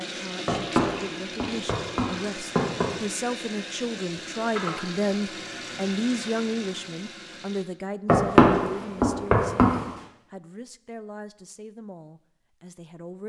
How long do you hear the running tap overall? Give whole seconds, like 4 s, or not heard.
8 s.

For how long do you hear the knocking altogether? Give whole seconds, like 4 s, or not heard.
4 s.